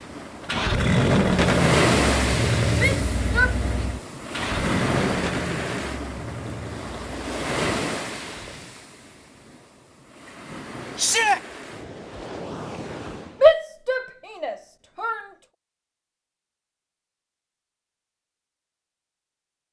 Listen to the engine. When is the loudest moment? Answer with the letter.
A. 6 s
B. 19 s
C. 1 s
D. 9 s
C.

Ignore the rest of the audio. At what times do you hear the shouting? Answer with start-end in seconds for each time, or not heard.
2.8-3.9, 10.9-11.4, 13.4-15.2.